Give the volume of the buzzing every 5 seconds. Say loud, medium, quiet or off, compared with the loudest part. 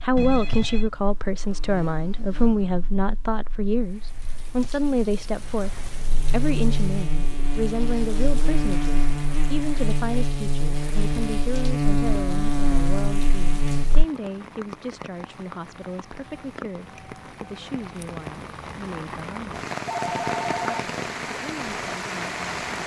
quiet, loud, loud, off, off.